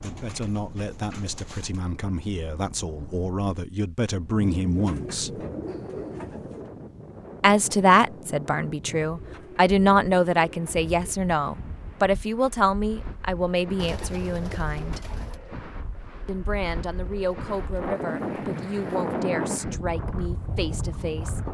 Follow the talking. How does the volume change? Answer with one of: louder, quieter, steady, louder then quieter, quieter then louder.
louder then quieter.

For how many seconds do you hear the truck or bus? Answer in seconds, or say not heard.
not heard.